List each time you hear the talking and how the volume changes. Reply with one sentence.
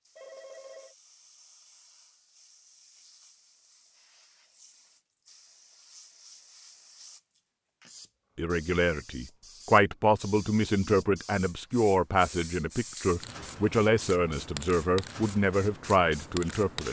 You can hear the talking from 8.3 to 16.8 s, at a steady volume.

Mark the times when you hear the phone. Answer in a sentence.
The phone can be heard from 0.1 to 0.9 s.